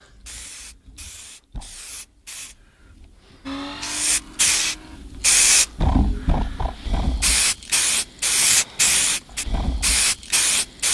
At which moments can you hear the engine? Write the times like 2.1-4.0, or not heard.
3.5-5.0.